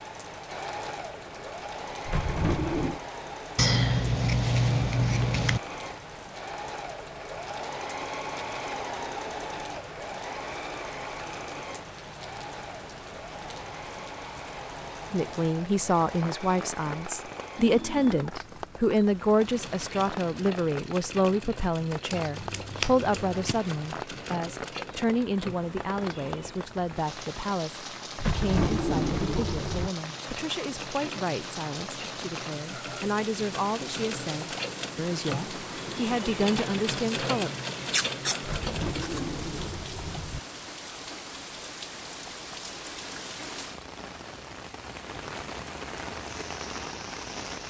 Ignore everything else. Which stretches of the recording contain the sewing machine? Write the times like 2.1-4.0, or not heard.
0.0-26.6, 29.9-39.3.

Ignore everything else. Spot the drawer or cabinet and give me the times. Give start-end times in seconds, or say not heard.
2.0-3.0, 28.1-29.9, 38.4-40.4.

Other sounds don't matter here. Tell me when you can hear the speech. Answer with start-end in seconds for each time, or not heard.
15.1-37.5.